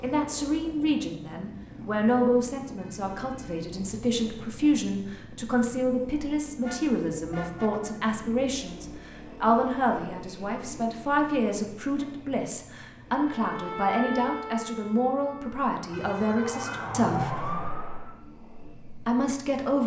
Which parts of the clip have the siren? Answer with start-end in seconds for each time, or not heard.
13.2-18.2.